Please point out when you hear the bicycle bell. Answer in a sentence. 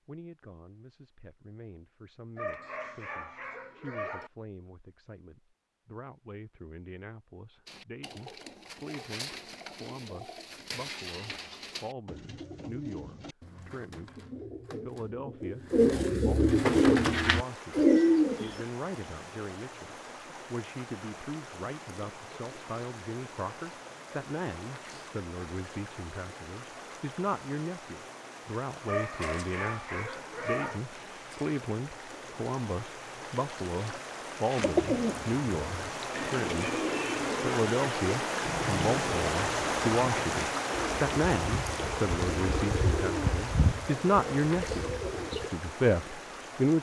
The bicycle bell can't be heard in this clip.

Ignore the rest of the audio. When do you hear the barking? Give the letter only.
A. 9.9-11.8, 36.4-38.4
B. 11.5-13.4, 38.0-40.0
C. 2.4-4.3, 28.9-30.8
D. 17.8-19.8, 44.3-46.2
C.